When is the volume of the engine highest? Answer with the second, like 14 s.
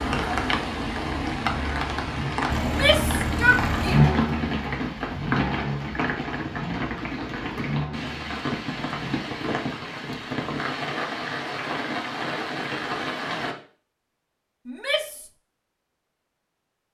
4 s.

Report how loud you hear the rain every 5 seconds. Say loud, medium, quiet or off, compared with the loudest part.
loud, loud, loud, off.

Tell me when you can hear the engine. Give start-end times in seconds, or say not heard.
2.5-9.2.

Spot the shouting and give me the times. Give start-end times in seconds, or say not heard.
2.6-4.1, 14.7-15.3.